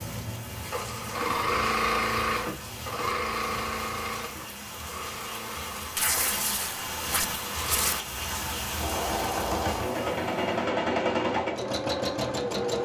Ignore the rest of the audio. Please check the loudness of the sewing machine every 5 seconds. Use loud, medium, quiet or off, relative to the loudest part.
loud, medium, loud.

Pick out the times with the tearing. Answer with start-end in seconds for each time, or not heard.
6.0-8.0.